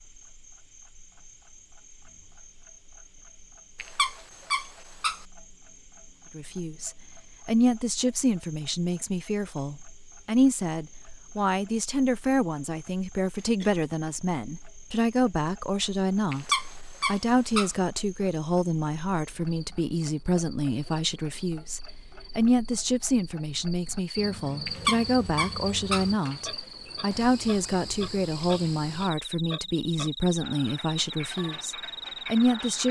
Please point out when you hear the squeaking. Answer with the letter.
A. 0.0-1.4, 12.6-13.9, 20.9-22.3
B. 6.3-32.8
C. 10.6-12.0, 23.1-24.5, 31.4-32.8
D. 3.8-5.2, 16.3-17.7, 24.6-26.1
D.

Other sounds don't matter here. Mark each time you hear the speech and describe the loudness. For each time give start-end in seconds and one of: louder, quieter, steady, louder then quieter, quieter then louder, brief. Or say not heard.
6.3-32.8 steady.